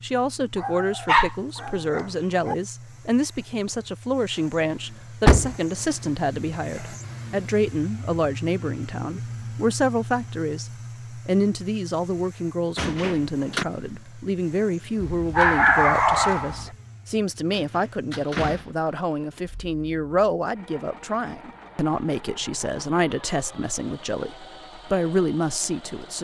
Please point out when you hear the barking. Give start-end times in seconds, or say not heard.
0.6-2.5, 15.0-16.7.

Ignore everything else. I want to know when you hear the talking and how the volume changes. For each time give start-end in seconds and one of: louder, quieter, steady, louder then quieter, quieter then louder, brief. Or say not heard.
0.0-26.1 steady.